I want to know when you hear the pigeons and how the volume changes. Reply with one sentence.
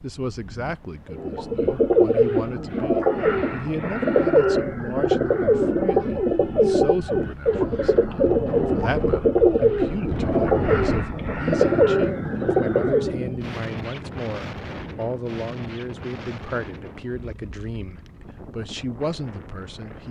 The pigeons can be heard from 1.1 to 13.3 s, at a steady volume.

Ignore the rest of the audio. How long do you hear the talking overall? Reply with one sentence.
You can hear the talking for 20 seconds altogether.